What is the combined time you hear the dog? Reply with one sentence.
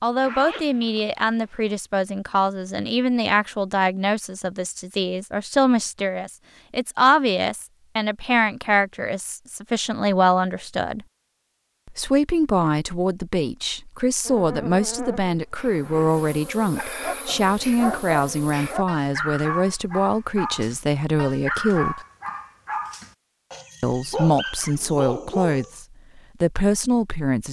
The dog can be heard for 9 seconds in total.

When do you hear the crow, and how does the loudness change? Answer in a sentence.
You can't hear the crow here.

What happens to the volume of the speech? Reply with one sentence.
The loudness of the speech stays about the same.